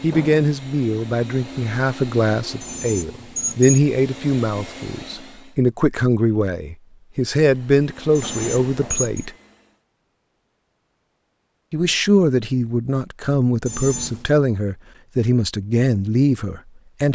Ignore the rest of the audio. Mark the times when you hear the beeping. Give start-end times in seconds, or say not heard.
2.6-3.8, 8.2-9.2, 13.7-14.2.